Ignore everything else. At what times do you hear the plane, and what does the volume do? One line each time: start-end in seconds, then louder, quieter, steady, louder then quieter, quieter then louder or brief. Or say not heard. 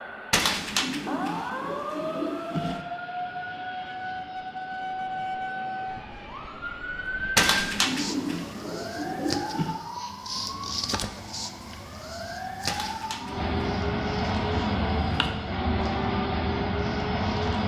0.0-17.6 louder.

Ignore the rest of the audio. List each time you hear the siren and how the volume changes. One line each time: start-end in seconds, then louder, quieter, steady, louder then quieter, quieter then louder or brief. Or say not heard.
0.0-17.6 quieter.